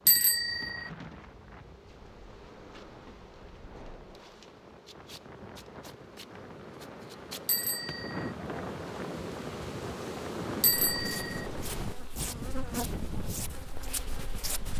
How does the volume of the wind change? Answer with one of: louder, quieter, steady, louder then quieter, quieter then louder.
louder.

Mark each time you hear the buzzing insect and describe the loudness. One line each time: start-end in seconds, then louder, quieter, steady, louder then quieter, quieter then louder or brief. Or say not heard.
0.0-14.7 louder.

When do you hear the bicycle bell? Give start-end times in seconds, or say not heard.
0.1-0.9, 7.5-8.3, 10.6-11.4.